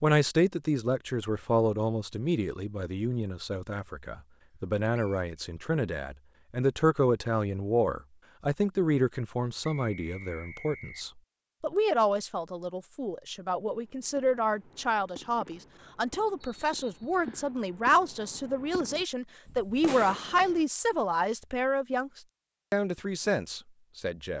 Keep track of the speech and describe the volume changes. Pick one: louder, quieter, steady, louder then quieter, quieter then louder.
steady.